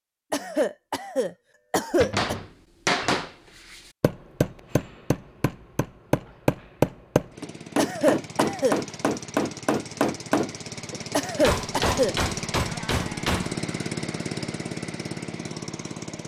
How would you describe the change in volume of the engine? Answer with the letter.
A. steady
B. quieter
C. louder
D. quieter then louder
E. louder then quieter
C.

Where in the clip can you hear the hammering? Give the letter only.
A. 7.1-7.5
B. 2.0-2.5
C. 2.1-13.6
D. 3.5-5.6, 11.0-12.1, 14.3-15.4
C.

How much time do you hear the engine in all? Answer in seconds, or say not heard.
9 s.